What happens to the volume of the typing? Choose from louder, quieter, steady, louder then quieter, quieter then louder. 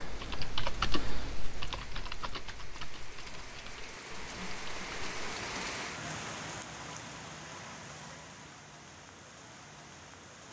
quieter.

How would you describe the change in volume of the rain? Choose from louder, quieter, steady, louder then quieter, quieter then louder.
louder then quieter.